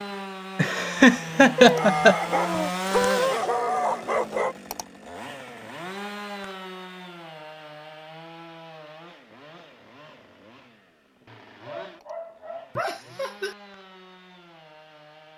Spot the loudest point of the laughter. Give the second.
2 s.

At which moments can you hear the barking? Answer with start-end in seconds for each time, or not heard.
1.6-4.5, 11.2-12.9.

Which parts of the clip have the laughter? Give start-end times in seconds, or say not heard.
0.6-2.1, 12.8-13.6.